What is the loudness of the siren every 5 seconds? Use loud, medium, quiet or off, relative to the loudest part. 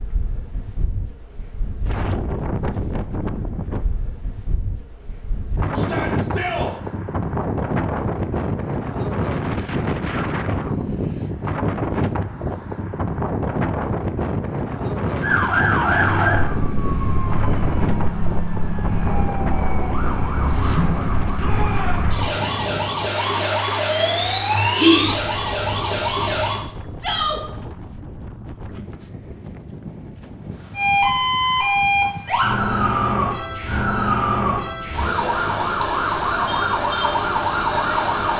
off, off, off, loud, loud, loud, loud, loud.